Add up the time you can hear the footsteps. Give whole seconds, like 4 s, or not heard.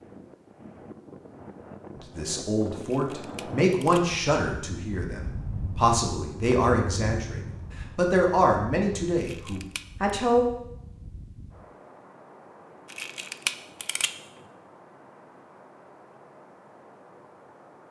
not heard.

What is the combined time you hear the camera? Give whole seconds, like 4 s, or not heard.
3 s.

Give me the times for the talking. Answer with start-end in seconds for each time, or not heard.
1.9-10.4.